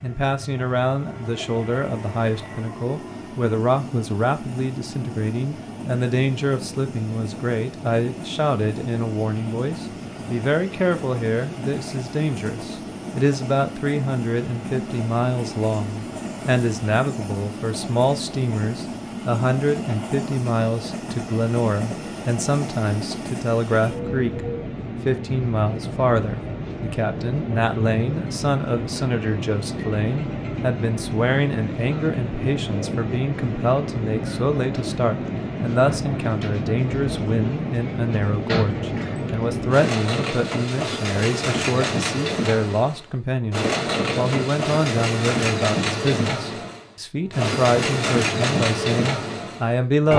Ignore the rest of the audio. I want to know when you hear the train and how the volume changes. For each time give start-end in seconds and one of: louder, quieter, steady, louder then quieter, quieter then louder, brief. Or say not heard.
0.0-50.1 louder.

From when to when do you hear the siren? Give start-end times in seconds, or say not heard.
not heard.